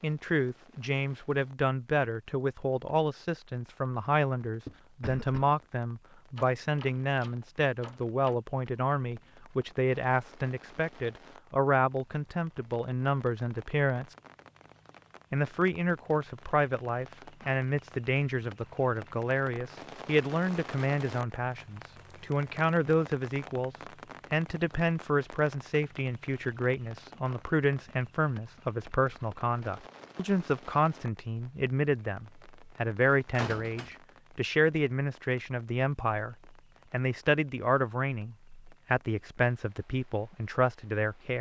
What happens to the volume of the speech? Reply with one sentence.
The volume of the speech stays about the same.